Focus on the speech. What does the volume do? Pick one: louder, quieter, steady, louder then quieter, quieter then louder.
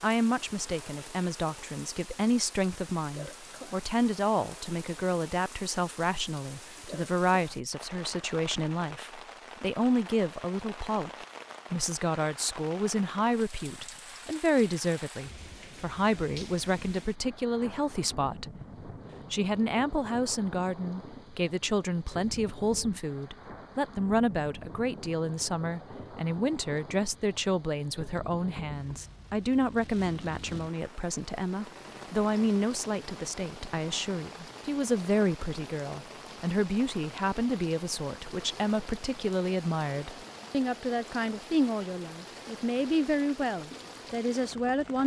steady.